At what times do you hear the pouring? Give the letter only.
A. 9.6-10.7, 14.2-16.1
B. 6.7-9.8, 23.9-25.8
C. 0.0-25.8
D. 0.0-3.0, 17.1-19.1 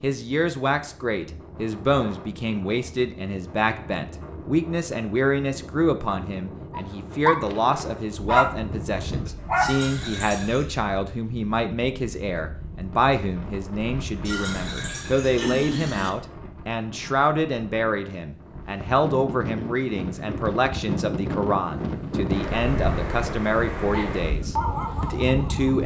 A.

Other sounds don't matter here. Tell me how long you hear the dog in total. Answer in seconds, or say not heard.
5 s.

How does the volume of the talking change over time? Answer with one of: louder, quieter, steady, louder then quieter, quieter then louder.
steady.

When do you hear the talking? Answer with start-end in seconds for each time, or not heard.
0.0-25.8.